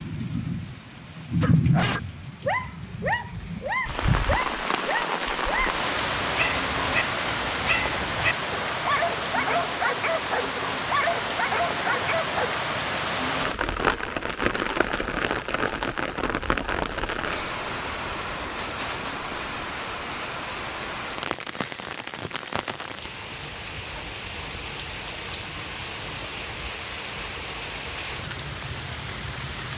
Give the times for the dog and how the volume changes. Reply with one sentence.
You can hear the dog from 1.4 to 12.5 s, at a steady volume.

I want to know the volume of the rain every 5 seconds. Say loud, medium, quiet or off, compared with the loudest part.
loud, loud, loud, loud, medium, medium.